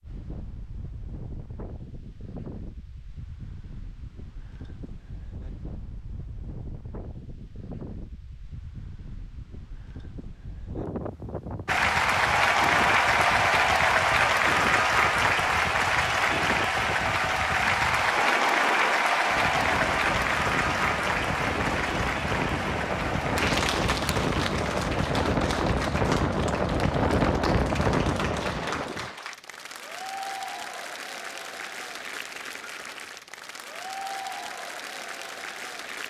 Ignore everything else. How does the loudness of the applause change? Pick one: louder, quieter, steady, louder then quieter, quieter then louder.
quieter.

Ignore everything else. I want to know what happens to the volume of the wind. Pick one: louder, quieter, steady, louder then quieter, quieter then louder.
louder.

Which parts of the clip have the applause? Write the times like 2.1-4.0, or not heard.
11.7-36.0.